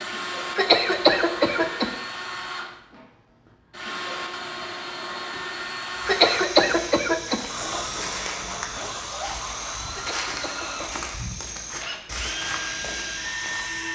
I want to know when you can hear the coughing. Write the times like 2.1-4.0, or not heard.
0.6-1.9, 6.0-7.5, 9.9-11.1.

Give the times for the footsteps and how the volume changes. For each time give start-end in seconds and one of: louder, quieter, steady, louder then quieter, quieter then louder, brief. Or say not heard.
6.2-13.9 steady.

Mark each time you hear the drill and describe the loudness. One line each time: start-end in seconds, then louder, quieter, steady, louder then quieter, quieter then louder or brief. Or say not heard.
0.0-13.9 steady.